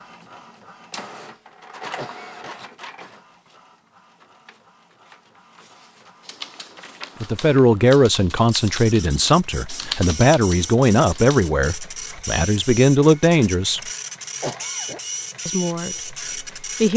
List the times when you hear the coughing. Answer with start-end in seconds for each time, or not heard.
1.9-2.5, 14.4-15.0.